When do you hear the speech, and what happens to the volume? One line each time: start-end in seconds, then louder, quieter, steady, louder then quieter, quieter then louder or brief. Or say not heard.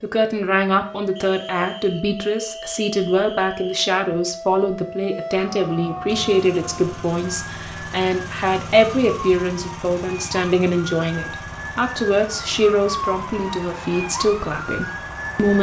0.0-15.5 steady.